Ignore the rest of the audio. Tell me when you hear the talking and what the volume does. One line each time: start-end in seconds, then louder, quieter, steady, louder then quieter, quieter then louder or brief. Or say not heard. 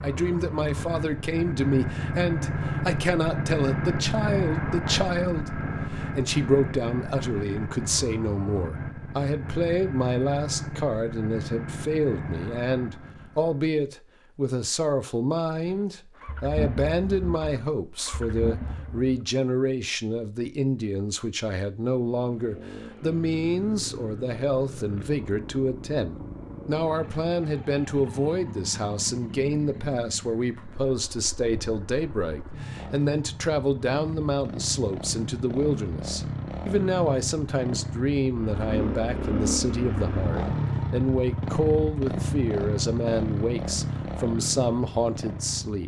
0.0-45.8 steady.